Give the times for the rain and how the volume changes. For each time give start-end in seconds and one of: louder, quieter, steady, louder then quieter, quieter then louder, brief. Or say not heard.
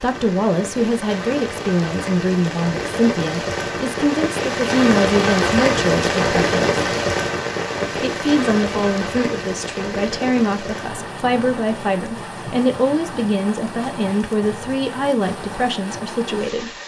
0.0-16.8 louder then quieter.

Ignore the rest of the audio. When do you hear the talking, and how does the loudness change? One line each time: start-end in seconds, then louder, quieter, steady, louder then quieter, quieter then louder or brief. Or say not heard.
0.0-6.7 steady
8.0-16.8 steady.